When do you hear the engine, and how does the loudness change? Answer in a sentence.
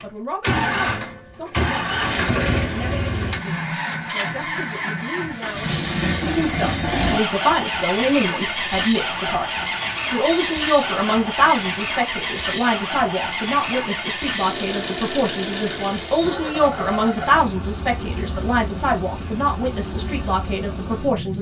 You can hear the engine from 0.0 to 21.3 s, getting quieter.